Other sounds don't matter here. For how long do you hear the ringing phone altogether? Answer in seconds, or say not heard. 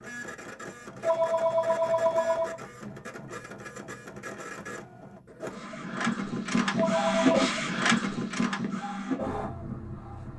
2 s.